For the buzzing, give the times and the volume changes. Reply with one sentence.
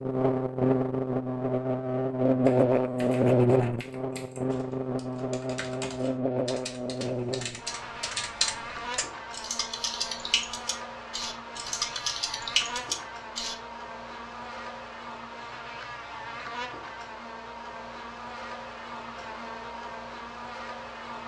You can hear the buzzing from 0.0 to 21.2 s, getting quieter.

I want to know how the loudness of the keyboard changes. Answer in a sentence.
The volume of the keyboard goes up.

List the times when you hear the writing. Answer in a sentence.
You can't hear the writing here.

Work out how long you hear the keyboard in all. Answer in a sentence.
The keyboard can be heard for 11 seconds in total.